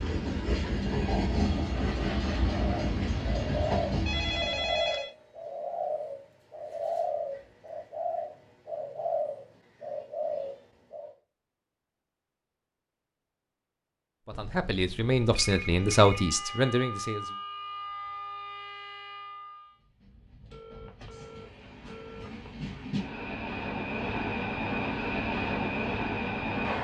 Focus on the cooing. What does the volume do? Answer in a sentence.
The volume of the cooing stays about the same.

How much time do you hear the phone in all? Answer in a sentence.
The phone can be heard for 5 seconds in total.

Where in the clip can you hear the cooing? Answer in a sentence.
The cooing can be heard from 2.5 to 11.2 s.